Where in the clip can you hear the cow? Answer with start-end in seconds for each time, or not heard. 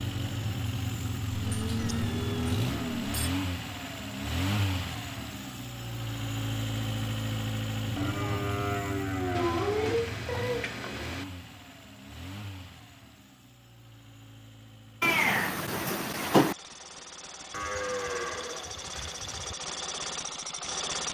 1.3-3.3, 8.0-9.9, 17.5-19.6.